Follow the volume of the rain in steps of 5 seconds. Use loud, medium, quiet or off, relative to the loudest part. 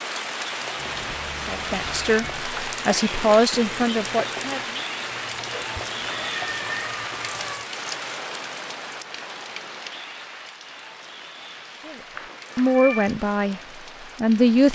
loud, loud, medium.